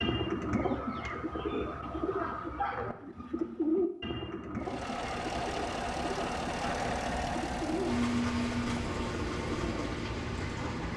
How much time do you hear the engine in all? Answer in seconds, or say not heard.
6 s.